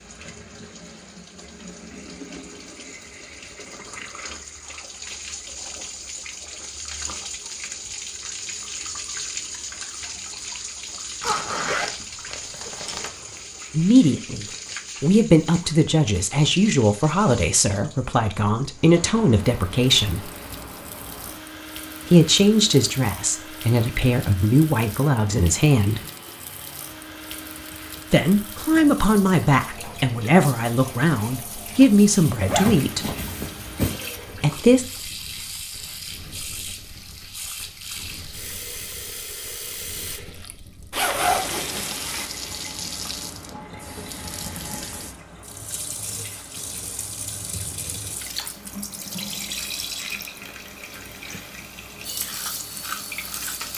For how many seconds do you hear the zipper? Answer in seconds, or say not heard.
5 s.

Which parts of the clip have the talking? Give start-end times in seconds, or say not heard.
13.7-20.2, 22.1-26.0, 28.1-33.0, 34.4-34.9.